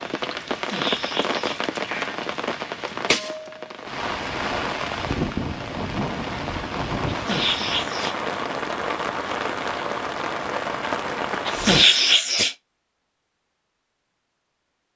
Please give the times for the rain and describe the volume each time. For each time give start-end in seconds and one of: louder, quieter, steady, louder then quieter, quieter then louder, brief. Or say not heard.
0.0-11.8 steady.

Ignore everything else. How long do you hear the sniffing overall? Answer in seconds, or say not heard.
4 s.